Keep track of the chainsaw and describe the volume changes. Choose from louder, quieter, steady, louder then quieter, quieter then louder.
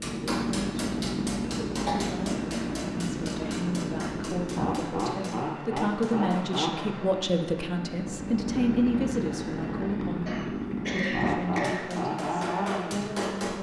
steady.